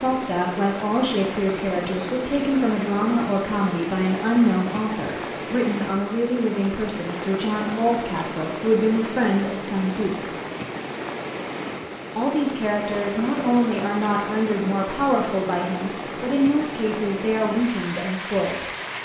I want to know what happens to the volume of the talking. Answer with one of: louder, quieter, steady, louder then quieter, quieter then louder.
steady.